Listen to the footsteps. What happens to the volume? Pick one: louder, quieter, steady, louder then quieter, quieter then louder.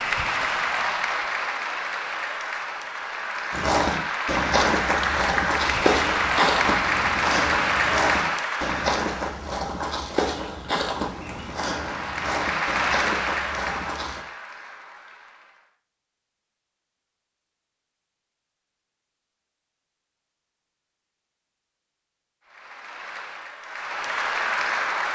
quieter.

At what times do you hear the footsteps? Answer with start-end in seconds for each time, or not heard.
3.5-14.2.